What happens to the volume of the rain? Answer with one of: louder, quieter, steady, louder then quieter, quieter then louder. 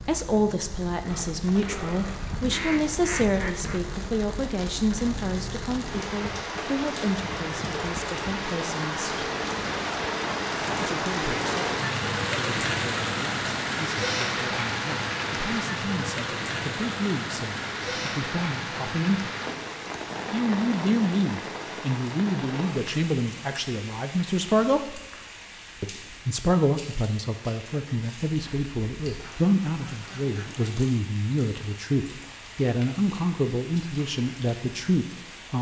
louder then quieter.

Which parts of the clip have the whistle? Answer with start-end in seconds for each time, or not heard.
not heard.